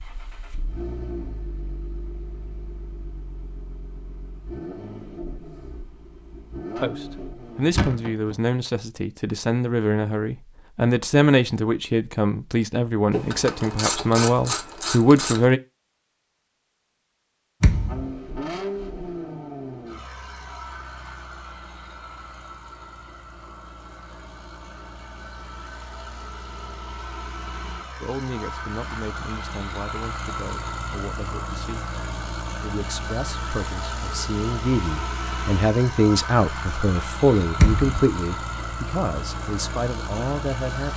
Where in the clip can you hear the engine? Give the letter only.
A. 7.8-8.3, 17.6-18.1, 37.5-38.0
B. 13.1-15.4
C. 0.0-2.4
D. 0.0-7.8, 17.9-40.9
D.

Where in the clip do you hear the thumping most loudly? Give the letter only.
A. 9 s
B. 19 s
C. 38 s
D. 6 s
C.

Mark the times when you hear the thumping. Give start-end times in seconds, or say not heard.
7.8-8.3, 17.6-18.1, 37.5-38.0.